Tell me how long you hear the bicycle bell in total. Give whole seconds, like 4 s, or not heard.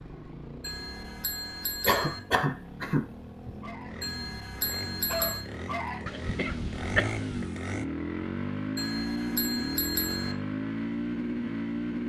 5 s.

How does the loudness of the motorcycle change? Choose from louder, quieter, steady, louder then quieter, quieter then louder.
louder.